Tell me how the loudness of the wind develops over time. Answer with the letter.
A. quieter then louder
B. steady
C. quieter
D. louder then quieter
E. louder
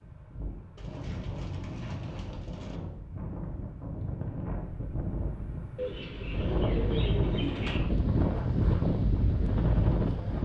E.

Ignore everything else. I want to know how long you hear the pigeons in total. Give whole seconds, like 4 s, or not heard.
4 s.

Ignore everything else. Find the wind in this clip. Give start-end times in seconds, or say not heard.
0.0-10.3.